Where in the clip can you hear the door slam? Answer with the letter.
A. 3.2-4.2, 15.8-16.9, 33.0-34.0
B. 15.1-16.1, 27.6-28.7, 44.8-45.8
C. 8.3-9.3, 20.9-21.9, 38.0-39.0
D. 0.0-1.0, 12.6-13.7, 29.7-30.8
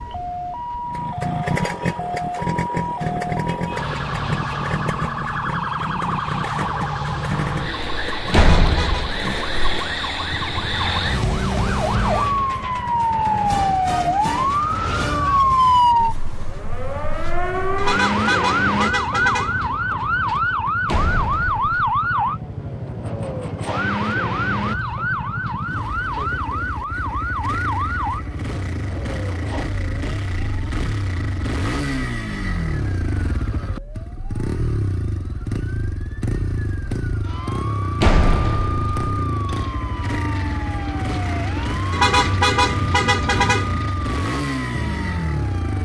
C.